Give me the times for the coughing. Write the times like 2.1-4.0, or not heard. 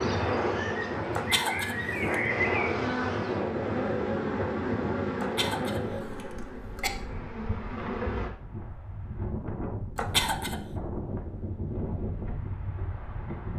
1.1-2.2, 5.2-6.9, 9.9-10.6.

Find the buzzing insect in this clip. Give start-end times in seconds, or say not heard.
0.0-8.3.